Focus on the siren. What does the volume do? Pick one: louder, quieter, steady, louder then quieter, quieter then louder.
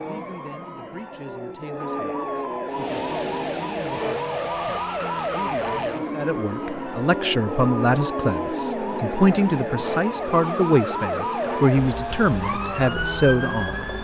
steady.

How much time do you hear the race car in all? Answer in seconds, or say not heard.
11 s.